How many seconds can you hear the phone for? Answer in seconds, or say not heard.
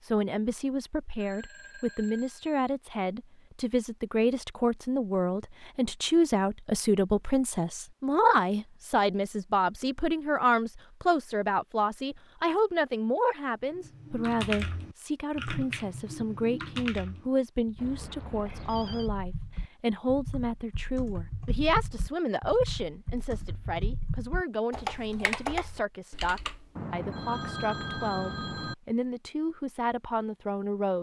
5 s.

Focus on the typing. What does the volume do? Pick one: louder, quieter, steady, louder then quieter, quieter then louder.
quieter then louder.